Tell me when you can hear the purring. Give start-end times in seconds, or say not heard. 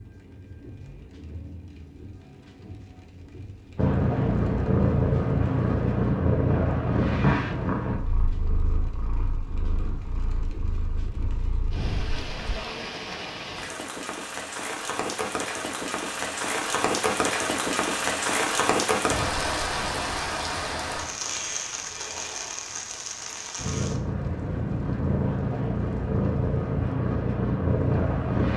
3.8-12.6, 23.6-28.5.